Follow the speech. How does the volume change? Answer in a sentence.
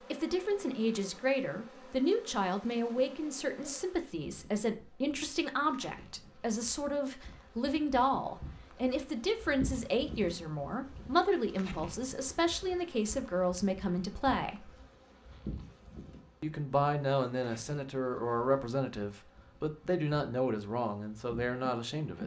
The loudness of the speech stays about the same.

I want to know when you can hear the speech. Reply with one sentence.
The speech can be heard from 0.1 to 14.7 s and from 16.4 to 22.2 s.